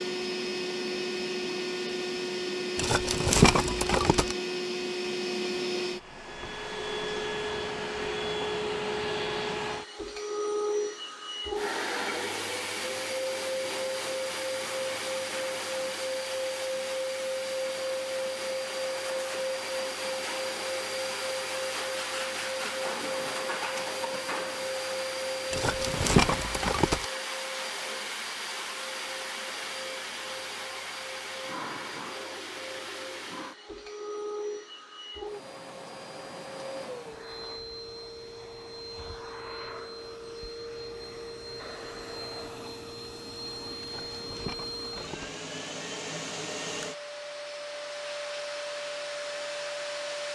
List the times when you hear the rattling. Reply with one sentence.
The rattling can be heard from 2.8 to 4.3 s, from 25.5 to 27.1 s and from 43.8 to 45.4 s.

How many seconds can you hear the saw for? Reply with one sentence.
You can't hear the saw here.